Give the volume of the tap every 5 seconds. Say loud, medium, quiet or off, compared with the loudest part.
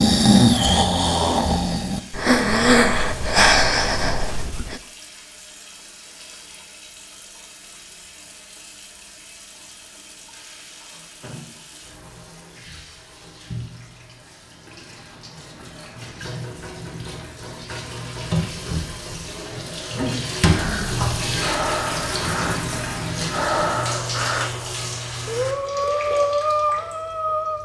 quiet, quiet, quiet, medium, loud, medium.